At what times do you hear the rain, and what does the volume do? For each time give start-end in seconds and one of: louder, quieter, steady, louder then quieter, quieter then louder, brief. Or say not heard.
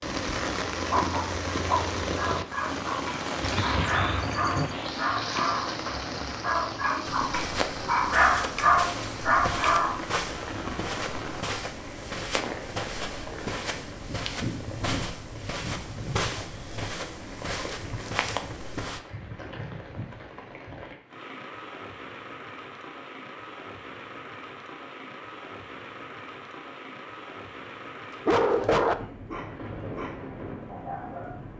0.0-31.5 quieter.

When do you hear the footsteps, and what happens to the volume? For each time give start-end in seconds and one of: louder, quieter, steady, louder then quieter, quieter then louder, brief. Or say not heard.
7.0-19.0 steady.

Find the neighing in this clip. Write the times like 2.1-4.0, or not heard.
3.4-4.8.